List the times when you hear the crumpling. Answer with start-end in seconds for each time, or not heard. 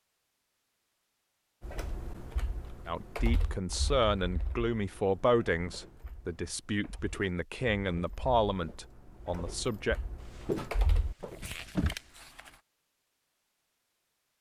11.2-12.6.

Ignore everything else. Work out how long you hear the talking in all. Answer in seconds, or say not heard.
7 s.